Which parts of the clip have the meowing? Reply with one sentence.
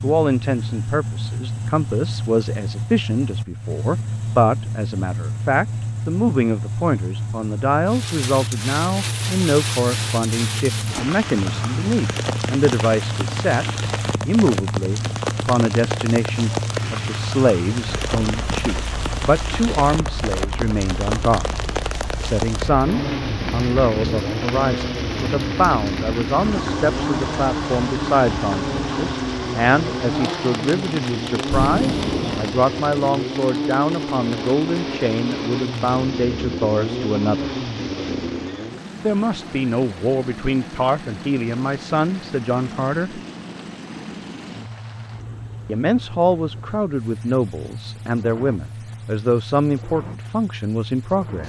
The meowing can be heard from 31.5 to 32.5 s.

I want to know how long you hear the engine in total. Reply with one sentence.
The engine can be heard for 51 seconds in total.